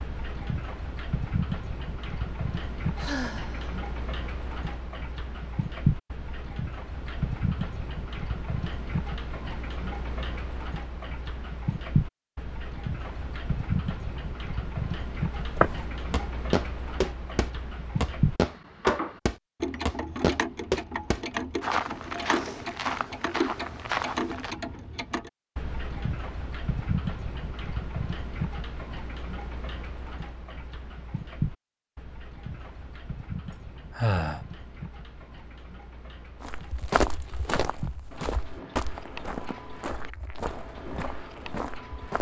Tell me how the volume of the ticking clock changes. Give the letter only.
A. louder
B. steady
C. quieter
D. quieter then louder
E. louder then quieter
C.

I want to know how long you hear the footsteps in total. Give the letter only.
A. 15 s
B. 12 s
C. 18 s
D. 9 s
A.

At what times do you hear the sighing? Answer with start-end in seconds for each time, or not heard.
3.0-3.8, 34.0-34.4.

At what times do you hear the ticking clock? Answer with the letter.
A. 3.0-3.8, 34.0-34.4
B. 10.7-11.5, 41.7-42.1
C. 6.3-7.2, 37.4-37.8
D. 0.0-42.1
D.